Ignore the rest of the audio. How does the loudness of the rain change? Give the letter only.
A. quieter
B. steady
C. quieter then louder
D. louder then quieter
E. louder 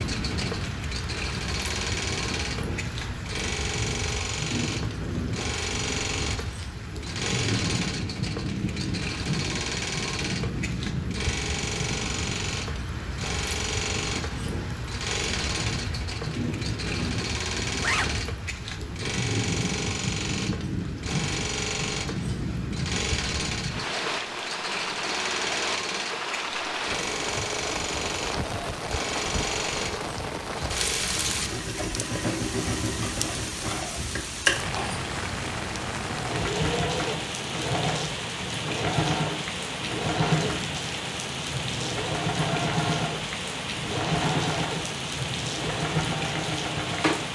B.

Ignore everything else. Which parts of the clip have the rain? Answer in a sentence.
You can hear the rain from 0.0 to 47.2 s.